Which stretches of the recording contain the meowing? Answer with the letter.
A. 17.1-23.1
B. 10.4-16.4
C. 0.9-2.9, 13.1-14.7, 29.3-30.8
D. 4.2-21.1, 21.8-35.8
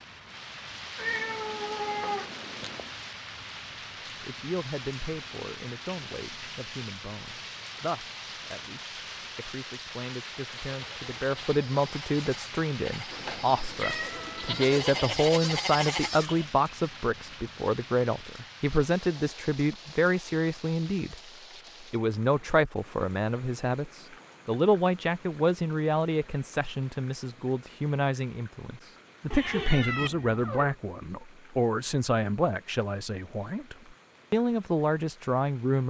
C.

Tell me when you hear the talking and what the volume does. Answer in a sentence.
The talking can be heard from 4.2 to 21.1 s, getting louder; and from 21.8 to 35.8 s, at a steady volume.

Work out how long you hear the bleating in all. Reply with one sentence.
You can hear the bleating for 6 seconds altogether.